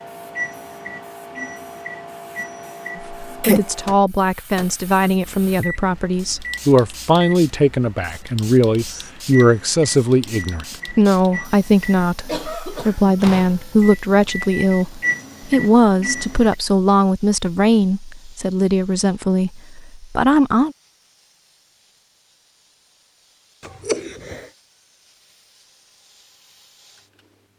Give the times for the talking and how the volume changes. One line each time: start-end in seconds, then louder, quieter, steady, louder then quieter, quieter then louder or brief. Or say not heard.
3.0-20.8 steady.